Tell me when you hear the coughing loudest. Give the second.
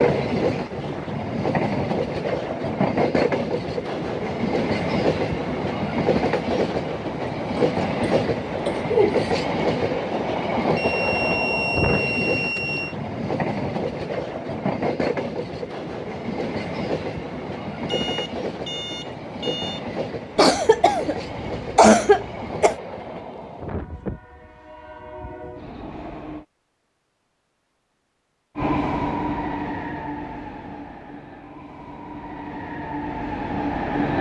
22 s.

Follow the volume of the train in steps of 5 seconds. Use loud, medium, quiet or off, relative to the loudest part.
loud, loud, loud, medium, medium, medium, medium.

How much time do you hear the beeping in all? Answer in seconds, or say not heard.
4 s.